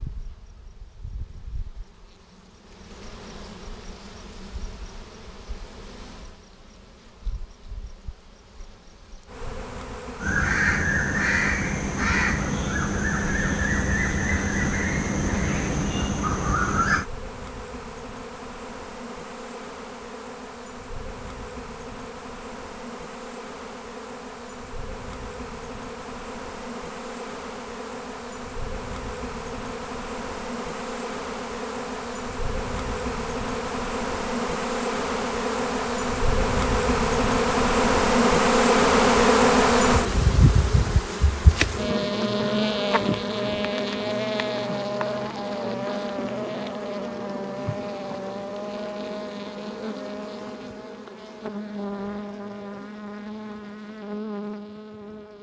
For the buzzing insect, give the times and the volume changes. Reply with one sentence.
You can hear the buzzing insect from 0.0 to 55.3 s, getting louder then quieter.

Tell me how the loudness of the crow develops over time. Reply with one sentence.
The volume of the crow stays about the same.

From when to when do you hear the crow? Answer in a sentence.
You can hear the crow from 10.2 to 17.1 s.